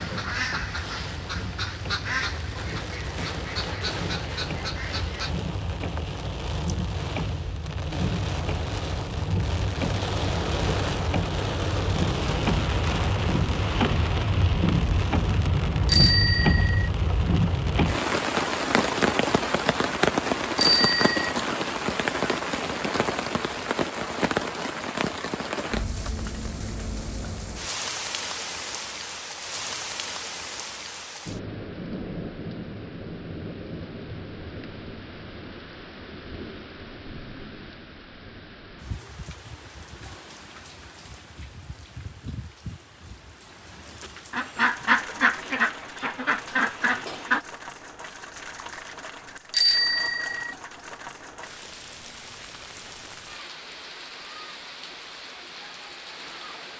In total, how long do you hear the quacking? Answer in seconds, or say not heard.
9 s.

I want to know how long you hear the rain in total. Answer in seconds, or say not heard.
57 s.